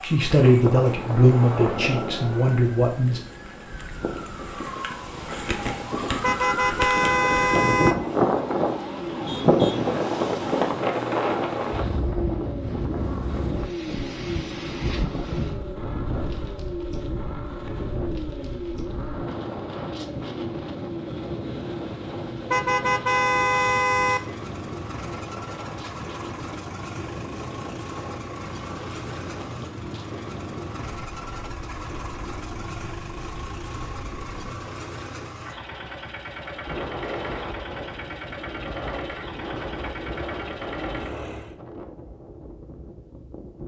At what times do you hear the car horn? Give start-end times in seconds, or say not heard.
6.2-8.0, 22.5-24.2.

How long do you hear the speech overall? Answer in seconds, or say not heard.
3 s.